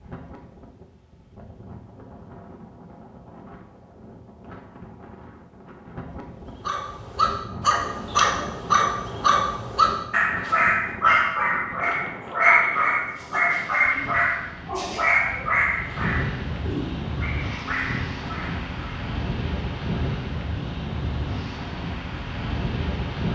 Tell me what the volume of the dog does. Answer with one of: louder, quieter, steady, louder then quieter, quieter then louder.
quieter.